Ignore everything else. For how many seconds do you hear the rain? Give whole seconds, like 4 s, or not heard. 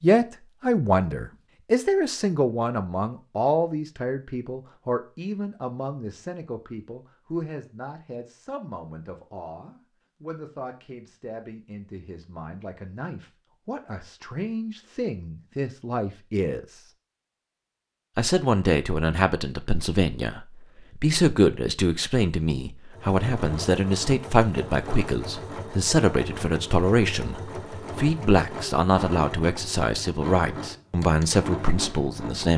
not heard.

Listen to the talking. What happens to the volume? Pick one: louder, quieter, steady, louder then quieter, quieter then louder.
quieter then louder.